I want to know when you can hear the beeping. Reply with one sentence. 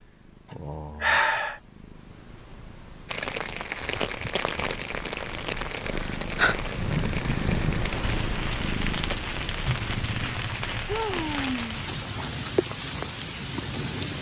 You can't hear the beeping here.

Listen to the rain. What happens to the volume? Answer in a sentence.
The volume of the rain stays about the same.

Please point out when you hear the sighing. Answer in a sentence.
The sighing can be heard from 0.5 to 1.6 s, from 6.0 to 6.5 s and from 10.2 to 11.9 s.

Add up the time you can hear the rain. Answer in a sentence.
The rain can be heard for 11 seconds in total.